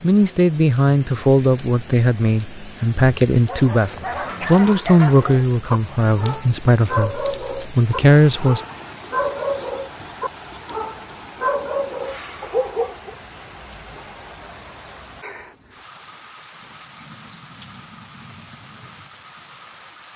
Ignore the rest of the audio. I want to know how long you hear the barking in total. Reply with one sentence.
The barking can be heard for 10 seconds in total.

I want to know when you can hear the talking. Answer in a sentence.
You can hear the talking from 0.0 to 8.6 s.